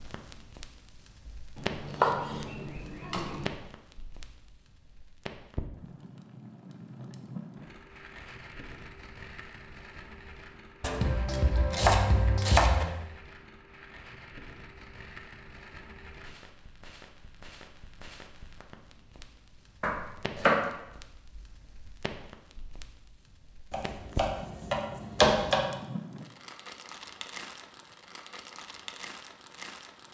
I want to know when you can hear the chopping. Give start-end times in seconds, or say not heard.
1.6-3.5, 10.8-12.8, 19.8-20.6, 23.7-25.6.